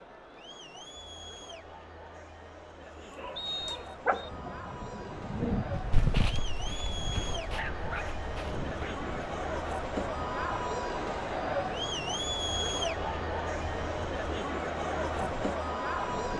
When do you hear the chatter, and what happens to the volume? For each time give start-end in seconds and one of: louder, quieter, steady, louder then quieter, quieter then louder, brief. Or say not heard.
0.0-16.3 louder.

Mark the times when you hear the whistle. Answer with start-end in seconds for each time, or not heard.
3.4-4.3.